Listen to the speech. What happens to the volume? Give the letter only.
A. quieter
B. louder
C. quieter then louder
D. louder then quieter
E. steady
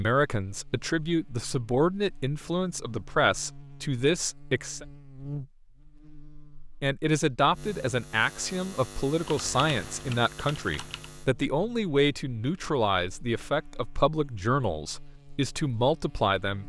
E.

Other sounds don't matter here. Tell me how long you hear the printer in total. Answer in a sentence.
The printer can't be heard in this clip.